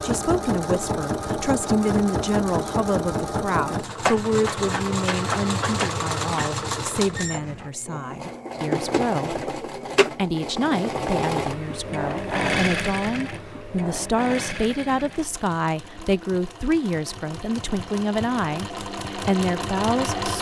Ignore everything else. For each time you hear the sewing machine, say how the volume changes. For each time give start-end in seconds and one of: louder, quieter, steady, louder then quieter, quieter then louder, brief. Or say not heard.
0.0-20.3 quieter.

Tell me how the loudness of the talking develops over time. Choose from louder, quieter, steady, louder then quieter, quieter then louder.
steady.